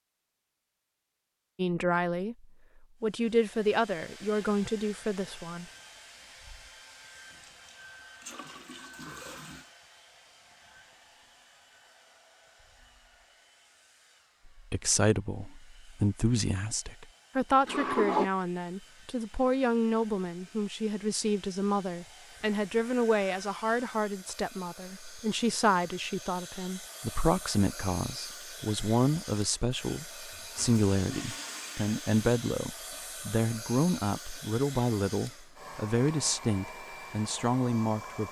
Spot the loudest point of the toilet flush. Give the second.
18 s.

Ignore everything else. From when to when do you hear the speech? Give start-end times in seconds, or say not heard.
1.6-5.7, 14.4-38.2.